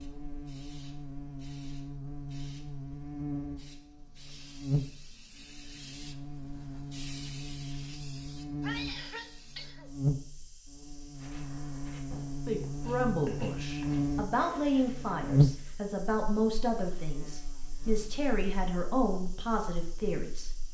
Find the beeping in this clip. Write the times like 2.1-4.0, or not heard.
not heard.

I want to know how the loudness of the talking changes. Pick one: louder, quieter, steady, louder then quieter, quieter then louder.
steady.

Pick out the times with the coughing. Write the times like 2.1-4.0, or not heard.
8.6-9.9.